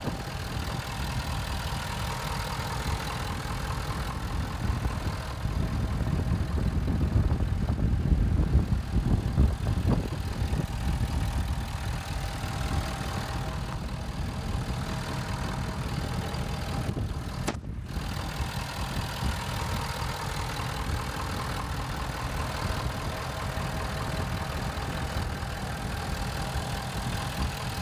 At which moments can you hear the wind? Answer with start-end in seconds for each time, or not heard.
0.0-27.7.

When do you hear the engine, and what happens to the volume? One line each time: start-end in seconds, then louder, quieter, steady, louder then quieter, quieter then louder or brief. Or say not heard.
0.0-27.7 quieter then louder.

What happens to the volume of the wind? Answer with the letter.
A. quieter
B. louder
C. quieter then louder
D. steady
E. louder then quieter
E.